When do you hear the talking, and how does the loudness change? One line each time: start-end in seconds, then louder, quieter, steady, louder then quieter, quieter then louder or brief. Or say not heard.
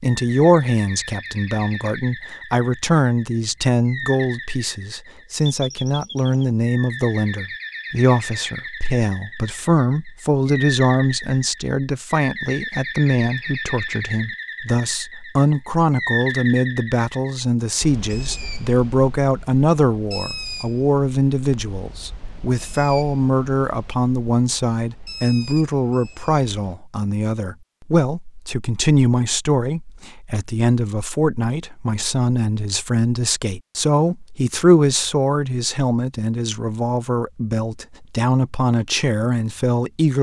0.0-40.1 steady.